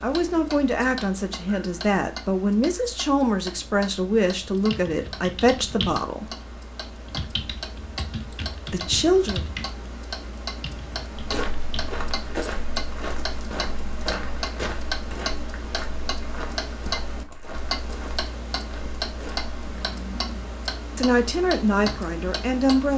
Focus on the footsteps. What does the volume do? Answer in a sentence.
The volume of the footsteps goes down.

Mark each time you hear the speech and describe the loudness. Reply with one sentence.
You can hear the speech from 0.0 to 6.3 s, at a steady volume; briefly from 8.7 to 9.4 s; and briefly from 20.9 to 22.9 s.